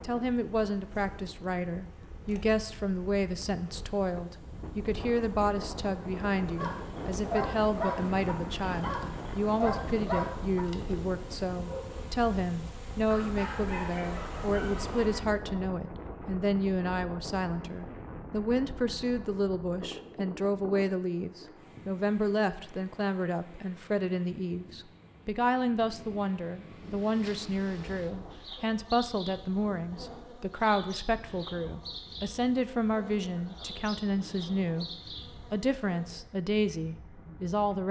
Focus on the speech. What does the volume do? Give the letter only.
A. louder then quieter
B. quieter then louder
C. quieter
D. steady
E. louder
D.